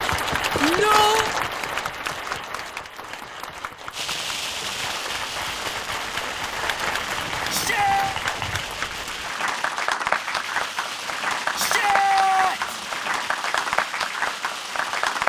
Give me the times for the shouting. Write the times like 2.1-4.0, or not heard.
0.6-1.3, 7.5-8.2, 11.6-12.8.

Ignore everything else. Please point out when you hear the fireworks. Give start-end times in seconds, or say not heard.
3.9-15.2.